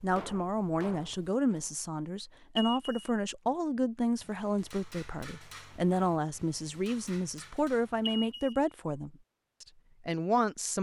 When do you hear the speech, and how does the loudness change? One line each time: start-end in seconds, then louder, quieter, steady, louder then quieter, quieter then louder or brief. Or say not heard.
0.0-10.7 steady.